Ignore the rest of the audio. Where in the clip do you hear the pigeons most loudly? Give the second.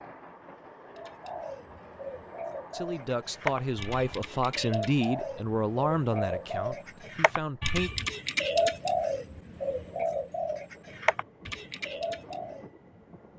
9 s.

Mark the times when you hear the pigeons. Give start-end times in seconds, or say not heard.
0.9-12.7.